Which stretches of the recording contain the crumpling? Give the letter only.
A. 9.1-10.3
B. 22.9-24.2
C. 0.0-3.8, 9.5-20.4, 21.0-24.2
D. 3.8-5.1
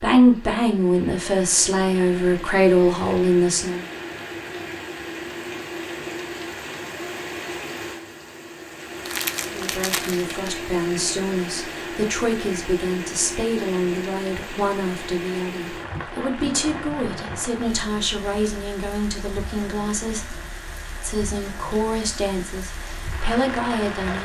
A.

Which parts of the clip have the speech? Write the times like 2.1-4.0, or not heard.
0.0-3.8, 9.5-20.4, 21.0-24.2.